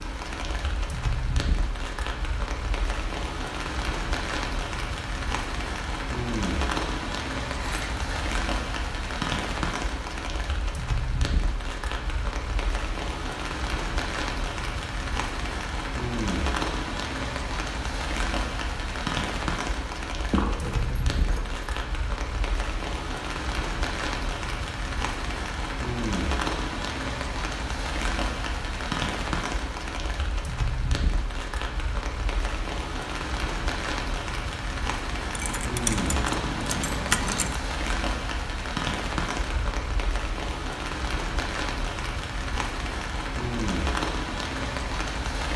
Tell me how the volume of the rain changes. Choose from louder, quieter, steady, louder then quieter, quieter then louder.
steady.